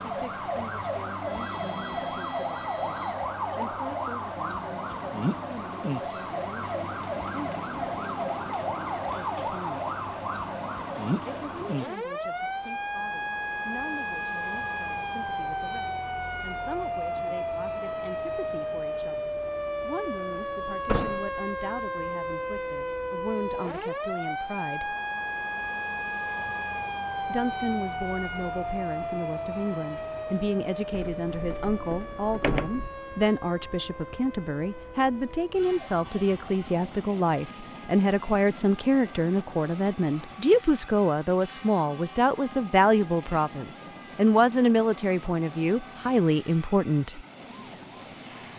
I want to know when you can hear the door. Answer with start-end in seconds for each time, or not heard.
20.9-21.3, 30.9-32.9.